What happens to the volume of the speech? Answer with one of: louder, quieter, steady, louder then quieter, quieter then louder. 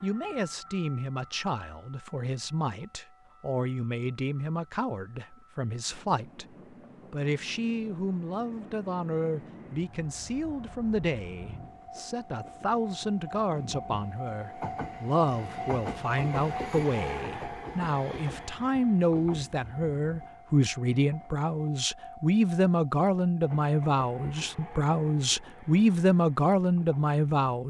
louder.